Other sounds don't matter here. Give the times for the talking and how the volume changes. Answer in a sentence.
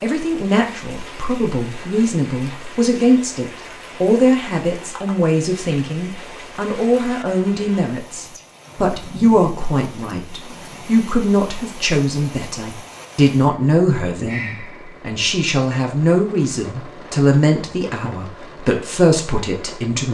You can hear the talking from 0.0 to 20.0 s, at a steady volume.